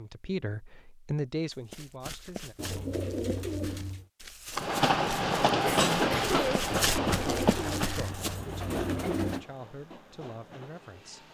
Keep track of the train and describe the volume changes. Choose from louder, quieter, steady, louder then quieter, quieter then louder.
quieter.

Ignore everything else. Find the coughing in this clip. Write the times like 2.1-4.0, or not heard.
5.7-6.7.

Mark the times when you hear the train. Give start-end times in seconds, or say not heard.
4.5-11.3.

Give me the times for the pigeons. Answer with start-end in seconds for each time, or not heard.
2.5-4.0, 6.8-9.4.